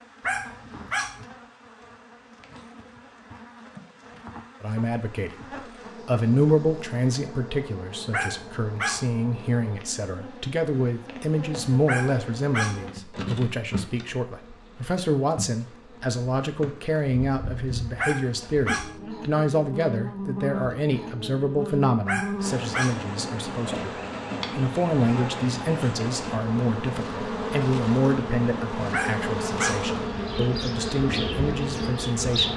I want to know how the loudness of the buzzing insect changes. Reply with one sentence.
The loudness of the buzzing insect goes up.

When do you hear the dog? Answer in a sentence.
You can hear the dog from 0.2 to 1.2 s, from 8.1 to 9.1 s, from 11.8 to 12.8 s, from 17.9 to 18.9 s, from 22.1 to 23.1 s and from 28.9 to 29.9 s.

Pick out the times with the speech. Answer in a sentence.
The speech can be heard from 4.6 to 5.3 s, from 6.0 to 23.9 s and from 24.6 to 32.5 s.